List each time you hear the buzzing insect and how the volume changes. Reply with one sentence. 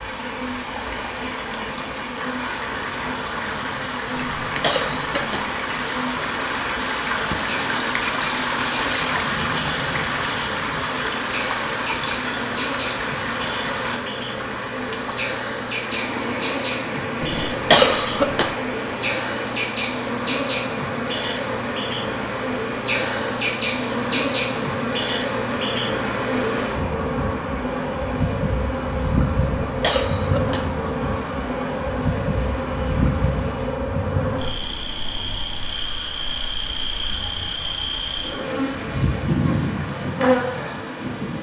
You can hear the buzzing insect from 0.0 to 41.3 s, getting louder.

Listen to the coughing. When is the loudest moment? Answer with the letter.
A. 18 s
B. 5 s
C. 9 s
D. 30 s
A.